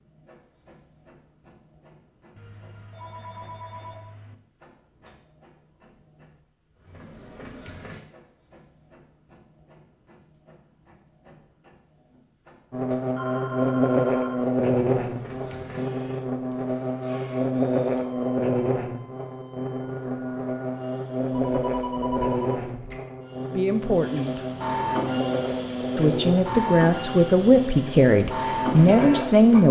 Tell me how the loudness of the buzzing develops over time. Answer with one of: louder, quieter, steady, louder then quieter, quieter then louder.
quieter.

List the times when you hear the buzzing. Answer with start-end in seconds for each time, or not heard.
12.7-29.6.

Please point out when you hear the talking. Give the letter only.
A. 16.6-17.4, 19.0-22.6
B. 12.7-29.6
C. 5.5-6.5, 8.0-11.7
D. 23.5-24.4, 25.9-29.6
D.